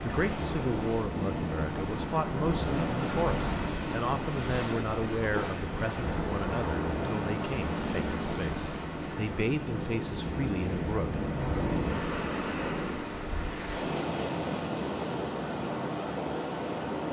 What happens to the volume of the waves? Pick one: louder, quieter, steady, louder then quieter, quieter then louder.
steady.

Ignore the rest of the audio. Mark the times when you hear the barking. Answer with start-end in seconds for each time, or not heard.
not heard.